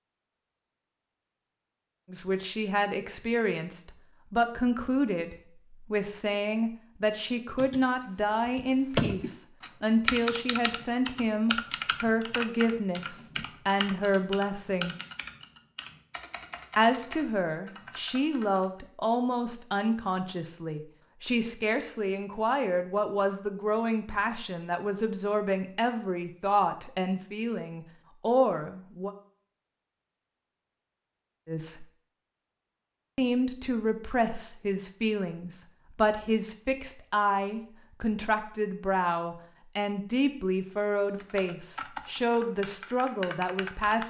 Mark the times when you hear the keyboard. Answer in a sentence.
The keyboard can be heard from 7.5 to 18.8 s and from 41.2 to 44.0 s.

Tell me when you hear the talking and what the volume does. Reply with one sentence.
You can hear the talking from 2.1 to 14.9 s, at a steady volume; from 16.8 to 29.1 s, at a steady volume; briefly from 31.4 to 31.9 s; and from 33.1 to 44.0 s, at a steady volume.